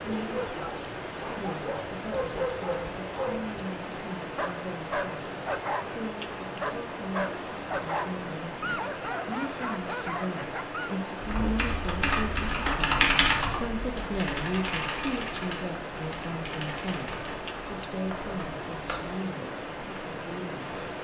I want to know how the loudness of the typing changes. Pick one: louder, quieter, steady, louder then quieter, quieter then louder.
quieter.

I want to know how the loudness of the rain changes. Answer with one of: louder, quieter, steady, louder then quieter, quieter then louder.
steady.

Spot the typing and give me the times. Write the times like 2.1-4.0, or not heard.
11.2-19.2.